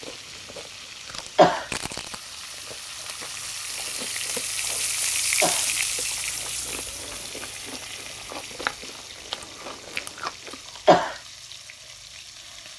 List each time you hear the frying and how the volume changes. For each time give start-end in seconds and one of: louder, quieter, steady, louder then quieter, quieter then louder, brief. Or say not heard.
0.0-12.7 louder then quieter.